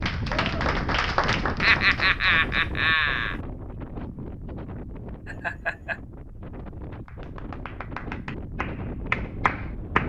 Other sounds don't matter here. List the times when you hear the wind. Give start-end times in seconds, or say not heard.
0.0-10.0.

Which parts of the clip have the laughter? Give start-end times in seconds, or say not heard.
1.6-3.4, 5.2-6.0.